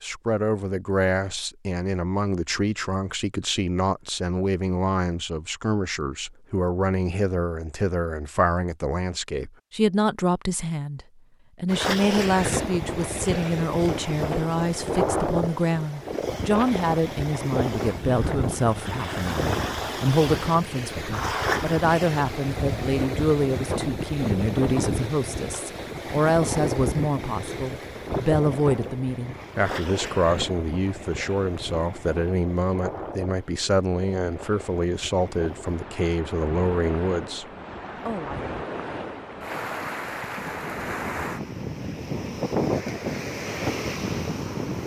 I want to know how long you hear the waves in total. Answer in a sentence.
The waves can be heard for 33 seconds in total.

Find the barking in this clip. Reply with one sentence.
You can't hear the barking here.